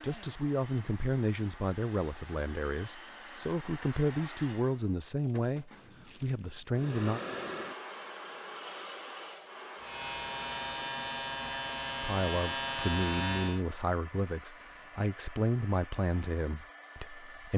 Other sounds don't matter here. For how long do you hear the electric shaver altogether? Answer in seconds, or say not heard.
4 s.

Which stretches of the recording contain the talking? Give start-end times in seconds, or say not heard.
0.0-7.2, 12.0-17.5.